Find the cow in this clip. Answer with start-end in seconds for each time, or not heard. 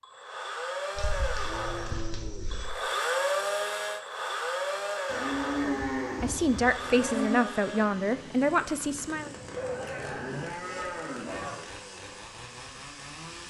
0.9-2.8, 5.0-7.5, 9.6-11.6.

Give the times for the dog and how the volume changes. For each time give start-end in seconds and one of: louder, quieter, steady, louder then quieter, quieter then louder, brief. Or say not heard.
not heard.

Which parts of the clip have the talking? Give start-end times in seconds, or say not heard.
5.6-9.3.